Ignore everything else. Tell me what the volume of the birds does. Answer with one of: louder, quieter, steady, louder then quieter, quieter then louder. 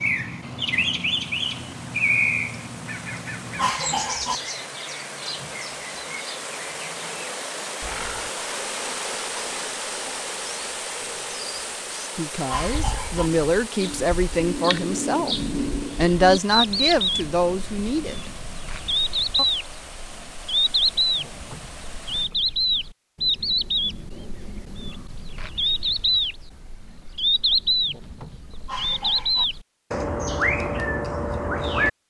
quieter then louder.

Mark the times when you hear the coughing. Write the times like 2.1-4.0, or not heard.
3.5-4.3, 12.4-13.3, 28.6-29.4.